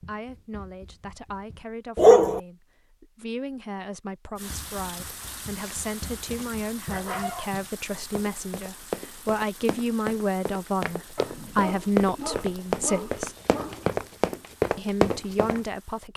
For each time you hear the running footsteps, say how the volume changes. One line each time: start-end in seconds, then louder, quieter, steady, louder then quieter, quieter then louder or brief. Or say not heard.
0.0-1.6 brief
4.3-15.6 louder.